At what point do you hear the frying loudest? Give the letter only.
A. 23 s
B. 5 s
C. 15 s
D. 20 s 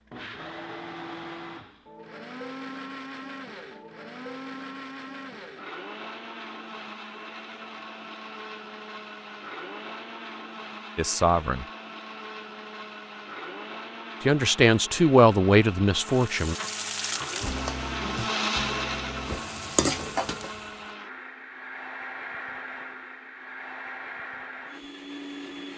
D.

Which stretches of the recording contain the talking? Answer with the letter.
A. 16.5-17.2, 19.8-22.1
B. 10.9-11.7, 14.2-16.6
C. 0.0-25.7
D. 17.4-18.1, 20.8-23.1
B.